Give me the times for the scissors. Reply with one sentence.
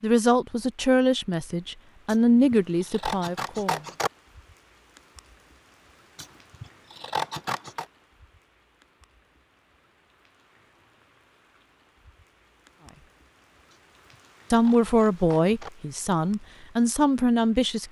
The scissors can be heard from 2.0 to 4.1 s, from 6.2 to 7.8 s and from 13.7 to 15.7 s.